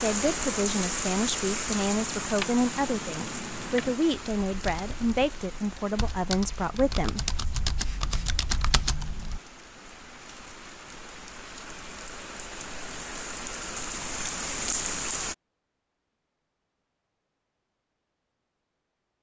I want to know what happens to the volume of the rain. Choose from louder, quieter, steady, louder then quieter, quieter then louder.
quieter then louder.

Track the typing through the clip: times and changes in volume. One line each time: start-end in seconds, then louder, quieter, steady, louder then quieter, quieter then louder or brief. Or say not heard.
1.9-9.4 quieter then louder.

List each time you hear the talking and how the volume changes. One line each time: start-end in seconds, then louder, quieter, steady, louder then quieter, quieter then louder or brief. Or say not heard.
0.0-7.2 steady.